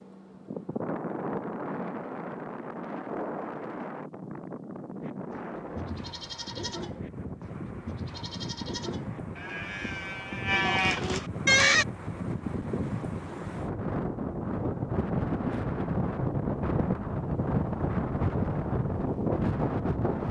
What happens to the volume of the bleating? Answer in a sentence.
The volume of the bleating goes up.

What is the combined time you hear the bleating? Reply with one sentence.
The bleating can be heard for 7 seconds in total.